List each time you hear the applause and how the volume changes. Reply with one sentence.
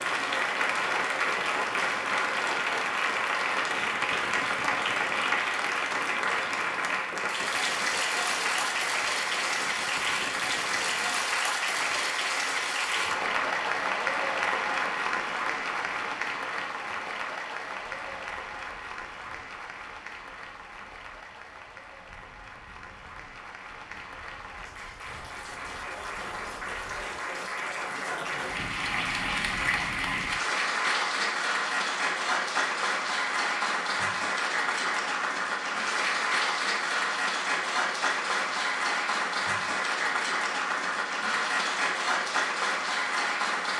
You can hear the applause from 0.0 to 43.7 s, getting quieter then louder.